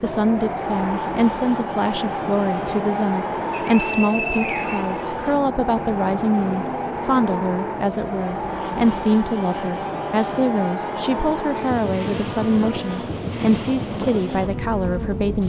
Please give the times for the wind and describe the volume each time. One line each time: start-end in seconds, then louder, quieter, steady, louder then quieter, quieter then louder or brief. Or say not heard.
0.0-15.4 steady.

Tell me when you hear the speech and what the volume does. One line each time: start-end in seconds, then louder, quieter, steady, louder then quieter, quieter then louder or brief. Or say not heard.
0.0-15.4 steady.